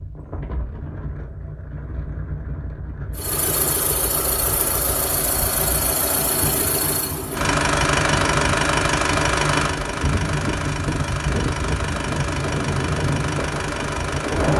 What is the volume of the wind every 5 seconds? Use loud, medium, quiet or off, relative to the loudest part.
medium, medium, loud.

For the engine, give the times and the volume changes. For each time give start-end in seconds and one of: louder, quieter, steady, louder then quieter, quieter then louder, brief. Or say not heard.
3.1-14.5 louder then quieter.